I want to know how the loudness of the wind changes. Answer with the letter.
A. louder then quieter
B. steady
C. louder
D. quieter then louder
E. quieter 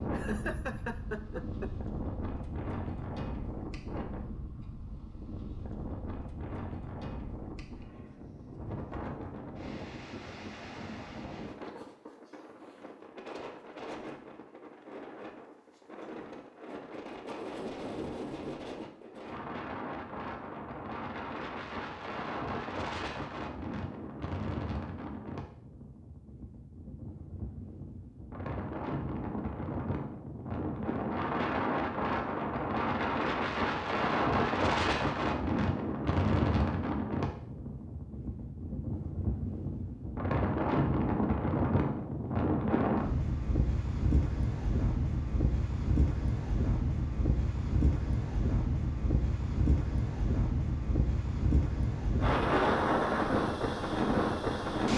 C.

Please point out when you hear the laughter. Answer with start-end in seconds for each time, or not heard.
0.1-1.7.